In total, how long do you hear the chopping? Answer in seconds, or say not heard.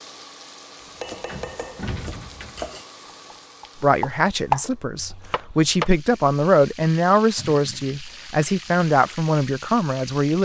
5 s.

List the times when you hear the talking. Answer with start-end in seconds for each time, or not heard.
3.8-10.3.